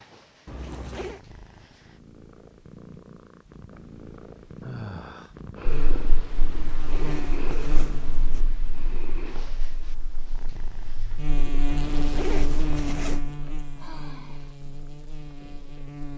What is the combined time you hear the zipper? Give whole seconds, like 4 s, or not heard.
4 s.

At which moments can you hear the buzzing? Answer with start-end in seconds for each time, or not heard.
5.7-16.1.